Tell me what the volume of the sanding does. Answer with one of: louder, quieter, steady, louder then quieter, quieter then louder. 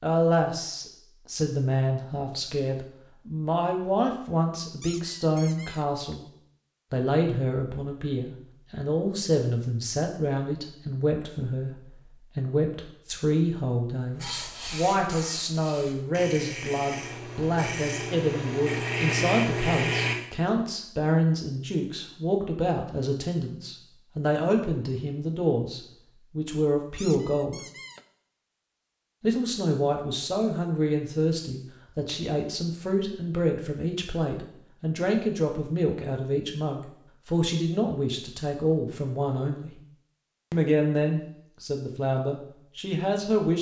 louder.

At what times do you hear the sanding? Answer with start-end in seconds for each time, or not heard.
14.2-20.1.